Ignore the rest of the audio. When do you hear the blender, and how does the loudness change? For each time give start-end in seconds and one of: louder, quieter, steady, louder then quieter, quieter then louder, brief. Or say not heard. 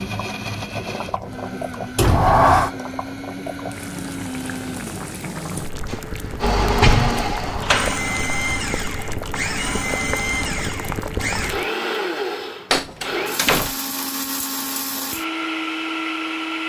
0.0-16.6 louder.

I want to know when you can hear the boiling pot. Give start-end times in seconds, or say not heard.
0.0-11.7.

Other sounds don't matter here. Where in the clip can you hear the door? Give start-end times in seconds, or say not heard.
1.9-2.7, 6.4-8.1, 12.7-13.8.